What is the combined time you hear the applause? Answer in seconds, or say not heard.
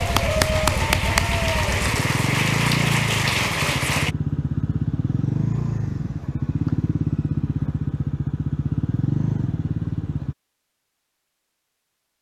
4 s.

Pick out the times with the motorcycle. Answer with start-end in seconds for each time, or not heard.
0.0-10.3.